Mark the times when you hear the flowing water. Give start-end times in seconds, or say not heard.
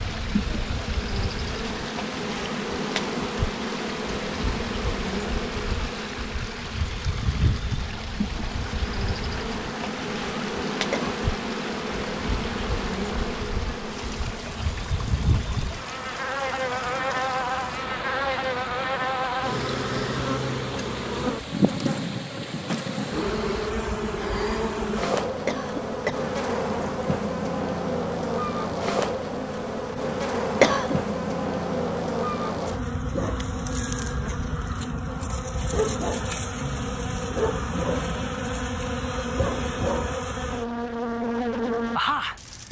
0.0-23.8.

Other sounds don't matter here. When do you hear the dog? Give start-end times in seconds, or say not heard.
not heard.